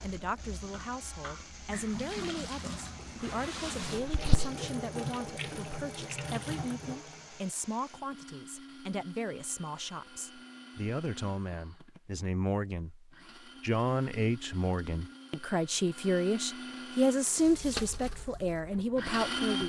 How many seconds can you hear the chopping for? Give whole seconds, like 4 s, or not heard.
not heard.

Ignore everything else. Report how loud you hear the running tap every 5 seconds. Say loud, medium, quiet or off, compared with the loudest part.
loud, loud, off, loud.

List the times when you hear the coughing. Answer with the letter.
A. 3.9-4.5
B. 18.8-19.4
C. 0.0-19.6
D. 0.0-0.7
A.